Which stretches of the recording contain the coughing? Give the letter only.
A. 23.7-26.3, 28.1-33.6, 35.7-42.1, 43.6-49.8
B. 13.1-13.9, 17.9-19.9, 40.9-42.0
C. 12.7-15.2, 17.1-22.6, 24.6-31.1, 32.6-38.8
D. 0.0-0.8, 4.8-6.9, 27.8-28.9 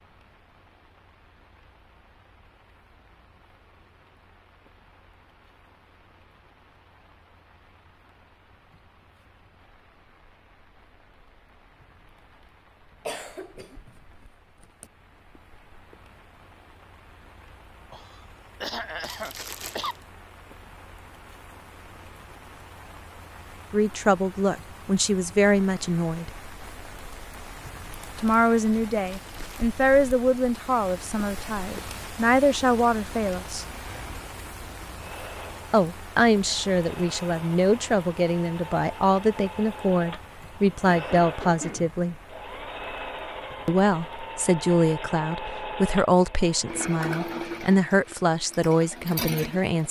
B.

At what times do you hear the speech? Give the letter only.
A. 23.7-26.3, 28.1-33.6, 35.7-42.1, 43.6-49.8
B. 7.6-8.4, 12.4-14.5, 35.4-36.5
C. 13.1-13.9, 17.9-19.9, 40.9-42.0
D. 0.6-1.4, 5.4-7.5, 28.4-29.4
A.